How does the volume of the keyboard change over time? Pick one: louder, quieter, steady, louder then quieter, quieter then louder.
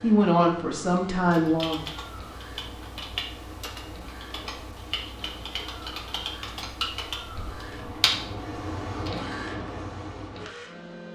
louder.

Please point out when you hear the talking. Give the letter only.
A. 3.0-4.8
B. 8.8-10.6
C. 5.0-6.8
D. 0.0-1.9
D.